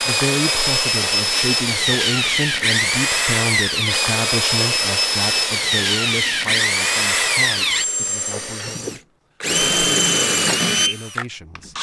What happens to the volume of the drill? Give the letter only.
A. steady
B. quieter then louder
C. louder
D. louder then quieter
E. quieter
A.